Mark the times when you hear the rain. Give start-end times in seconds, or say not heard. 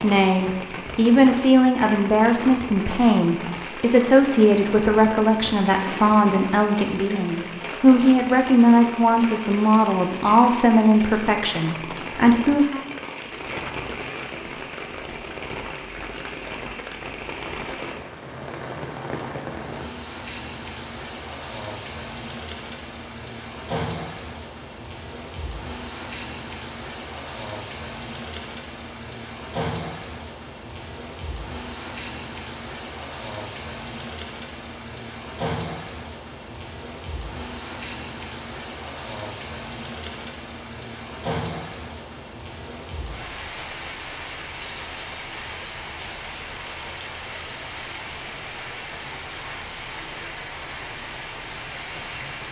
0.0-52.4.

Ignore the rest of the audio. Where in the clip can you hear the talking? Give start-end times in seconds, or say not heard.
0.0-12.8.